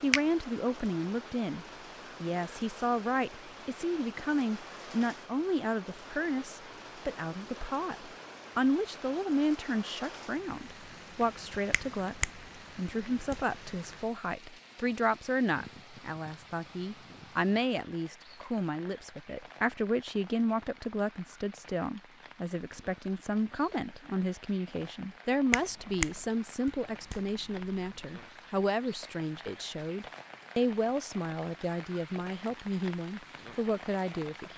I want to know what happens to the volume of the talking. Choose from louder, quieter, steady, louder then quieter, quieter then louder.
steady.